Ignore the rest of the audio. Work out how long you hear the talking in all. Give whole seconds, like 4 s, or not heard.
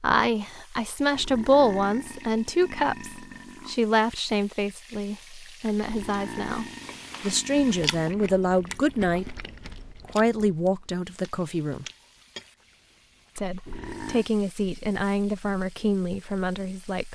15 s.